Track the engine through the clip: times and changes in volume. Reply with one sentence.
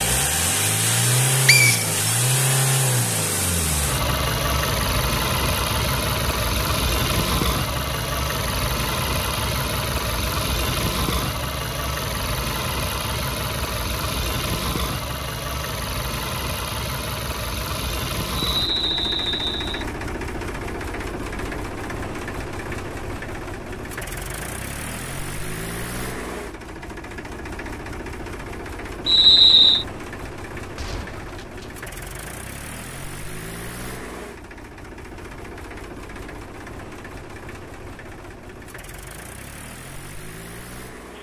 The engine can be heard from 0.0 to 41.1 s, getting quieter.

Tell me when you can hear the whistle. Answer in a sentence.
The whistle can be heard from 1.4 to 1.9 s, from 18.4 to 19.9 s and from 29.1 to 29.9 s.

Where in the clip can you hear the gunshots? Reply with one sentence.
You can hear the gunshots from 30.8 to 31.7 s.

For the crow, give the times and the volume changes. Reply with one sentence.
The crow can't be heard in this clip.